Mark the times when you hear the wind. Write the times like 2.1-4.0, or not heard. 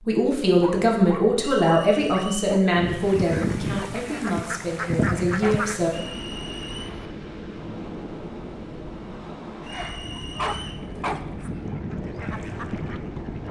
2.9-13.4.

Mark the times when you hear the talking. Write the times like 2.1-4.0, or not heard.
0.1-5.9.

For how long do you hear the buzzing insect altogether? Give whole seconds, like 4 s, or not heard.
not heard.